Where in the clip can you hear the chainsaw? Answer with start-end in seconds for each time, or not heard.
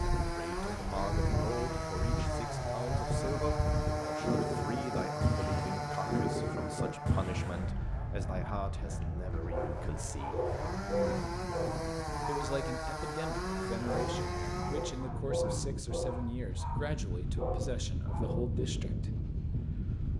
0.0-15.1.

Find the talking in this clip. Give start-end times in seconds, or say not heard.
0.2-10.4, 12.2-19.1.